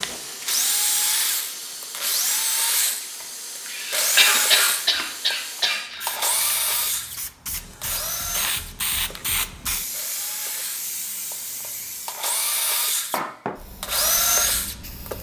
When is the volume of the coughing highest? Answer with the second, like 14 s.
4 s.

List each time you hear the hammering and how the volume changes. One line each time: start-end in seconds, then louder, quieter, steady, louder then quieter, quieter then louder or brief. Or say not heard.
not heard.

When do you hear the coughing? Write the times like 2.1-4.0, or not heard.
3.6-6.2.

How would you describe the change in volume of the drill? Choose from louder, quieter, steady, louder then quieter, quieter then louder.
quieter then louder.